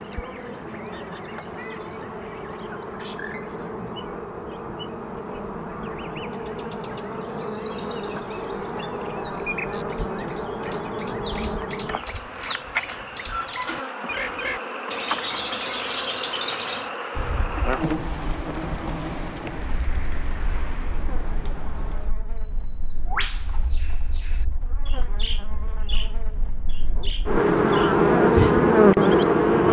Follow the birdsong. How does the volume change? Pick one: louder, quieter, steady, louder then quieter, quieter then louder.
louder then quieter.